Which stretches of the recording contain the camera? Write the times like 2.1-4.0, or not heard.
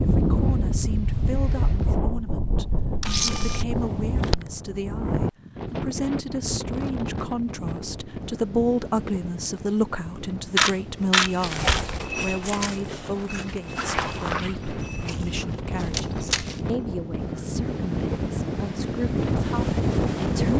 3.0-3.6, 10.6-11.8, 15.9-16.4.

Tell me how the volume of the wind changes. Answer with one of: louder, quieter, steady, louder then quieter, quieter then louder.
quieter then louder.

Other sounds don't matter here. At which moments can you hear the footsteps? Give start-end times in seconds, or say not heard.
11.0-16.8.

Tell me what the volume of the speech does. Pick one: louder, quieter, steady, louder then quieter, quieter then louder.
louder then quieter.